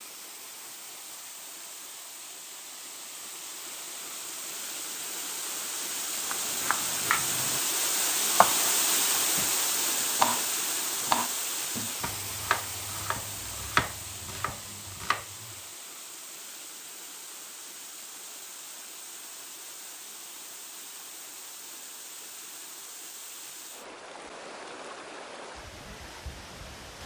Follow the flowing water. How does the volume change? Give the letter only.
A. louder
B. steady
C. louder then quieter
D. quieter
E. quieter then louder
C.